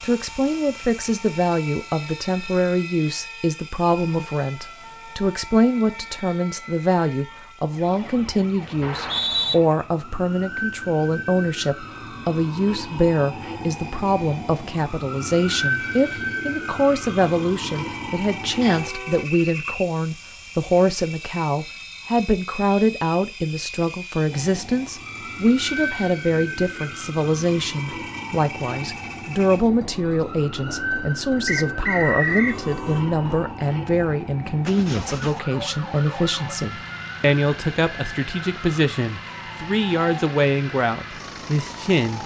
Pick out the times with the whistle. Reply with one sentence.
You can hear the whistle from 8.8 to 9.6 s, from 18.6 to 19.9 s and from 31.4 to 32.6 s.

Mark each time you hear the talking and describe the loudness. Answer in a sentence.
You can hear the talking from 0.0 to 42.2 s, at a steady volume.